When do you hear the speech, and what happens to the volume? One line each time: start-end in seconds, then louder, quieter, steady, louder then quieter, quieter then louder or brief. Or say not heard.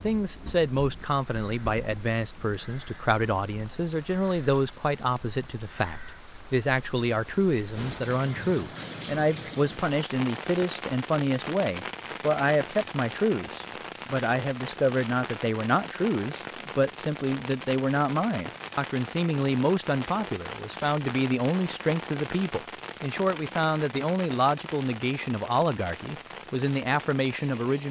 0.0-27.8 steady.